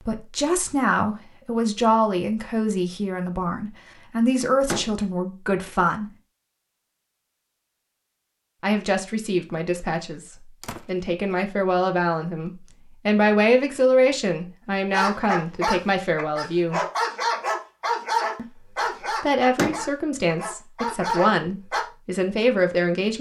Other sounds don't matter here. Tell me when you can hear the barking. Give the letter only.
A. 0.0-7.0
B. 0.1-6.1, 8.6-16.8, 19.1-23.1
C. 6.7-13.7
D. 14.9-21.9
D.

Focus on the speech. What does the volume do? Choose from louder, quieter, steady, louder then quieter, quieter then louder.
steady.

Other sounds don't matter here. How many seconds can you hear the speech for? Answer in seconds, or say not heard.
18 s.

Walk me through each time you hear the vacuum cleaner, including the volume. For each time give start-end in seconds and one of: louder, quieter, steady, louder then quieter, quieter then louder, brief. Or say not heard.
not heard.